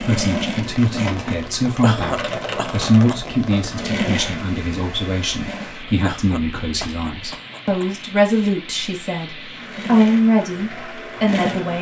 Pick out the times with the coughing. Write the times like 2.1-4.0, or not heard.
1.8-3.2, 6.0-8.0.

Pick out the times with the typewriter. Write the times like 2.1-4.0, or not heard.
not heard.